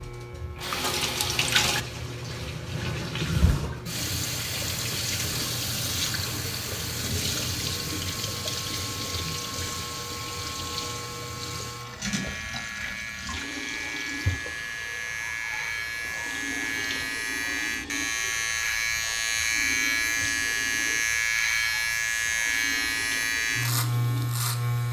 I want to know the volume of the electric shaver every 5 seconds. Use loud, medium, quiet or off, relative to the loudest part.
quiet, quiet, medium, loud, loud.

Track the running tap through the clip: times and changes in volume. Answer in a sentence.
The running tap can be heard from 0.0 to 24.7 s, getting quieter.